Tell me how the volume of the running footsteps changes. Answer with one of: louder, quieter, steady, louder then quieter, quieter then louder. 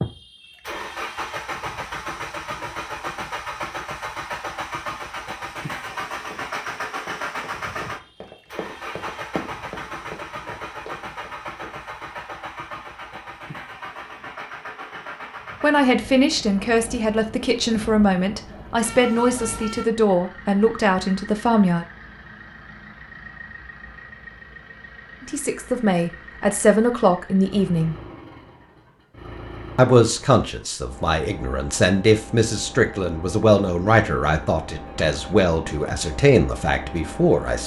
louder then quieter.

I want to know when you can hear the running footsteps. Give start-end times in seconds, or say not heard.
5.8-12.2.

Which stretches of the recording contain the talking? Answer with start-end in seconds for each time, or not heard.
15.6-21.9, 25.2-27.9, 29.8-37.6.